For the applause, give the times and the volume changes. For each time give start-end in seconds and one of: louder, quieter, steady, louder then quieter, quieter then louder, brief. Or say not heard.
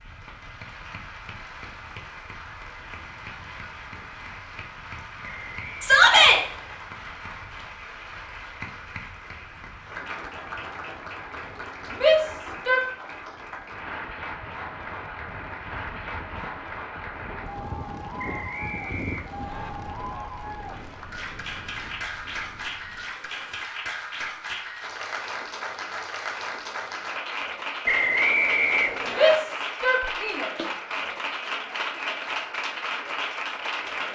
0.0-34.0 louder.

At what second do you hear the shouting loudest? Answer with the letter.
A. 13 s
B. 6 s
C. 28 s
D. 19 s
B.